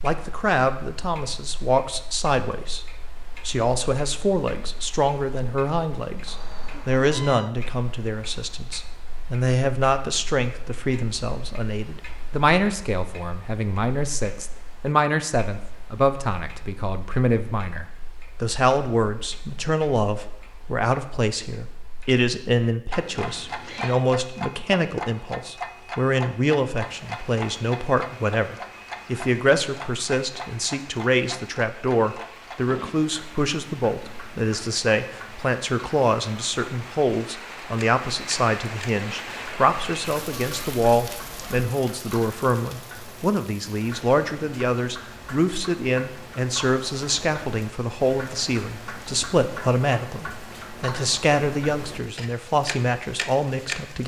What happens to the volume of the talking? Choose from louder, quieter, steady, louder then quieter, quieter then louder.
steady.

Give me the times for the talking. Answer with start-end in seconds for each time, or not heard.
0.0-54.0.